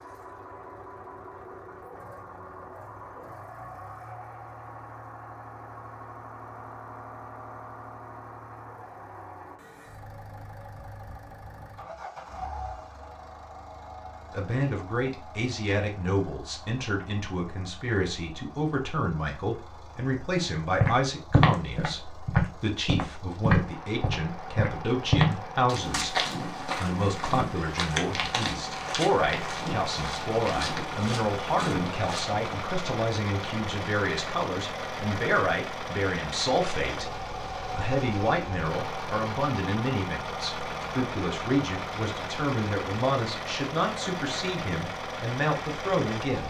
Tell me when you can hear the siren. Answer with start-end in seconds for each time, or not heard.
not heard.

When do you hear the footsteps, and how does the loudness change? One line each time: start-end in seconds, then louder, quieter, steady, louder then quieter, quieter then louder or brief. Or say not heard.
20.8-32.6 quieter.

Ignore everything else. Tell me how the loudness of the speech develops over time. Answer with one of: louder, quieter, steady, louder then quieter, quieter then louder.
steady.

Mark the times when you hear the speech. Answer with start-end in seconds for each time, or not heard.
14.3-46.4.